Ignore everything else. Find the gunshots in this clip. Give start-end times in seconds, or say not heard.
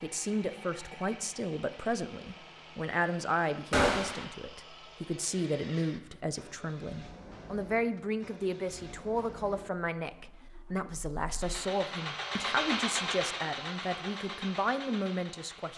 3.7-4.2.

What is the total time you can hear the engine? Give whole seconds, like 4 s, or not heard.
16 s.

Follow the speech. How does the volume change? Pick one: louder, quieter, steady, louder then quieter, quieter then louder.
steady.